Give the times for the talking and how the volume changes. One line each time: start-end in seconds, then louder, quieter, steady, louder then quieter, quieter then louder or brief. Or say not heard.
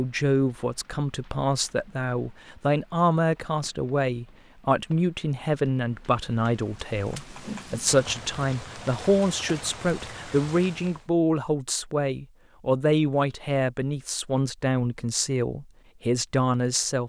0.0-17.0 steady.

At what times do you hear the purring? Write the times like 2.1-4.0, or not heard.
not heard.